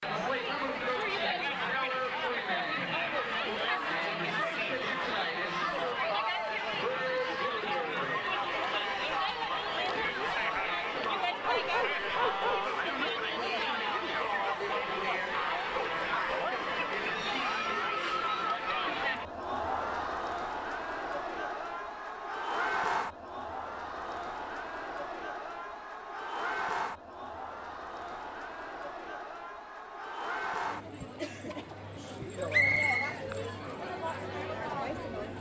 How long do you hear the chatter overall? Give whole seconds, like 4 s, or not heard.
35 s.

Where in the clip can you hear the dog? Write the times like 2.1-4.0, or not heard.
11.4-12.7.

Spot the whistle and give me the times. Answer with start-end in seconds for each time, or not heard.
32.5-33.1.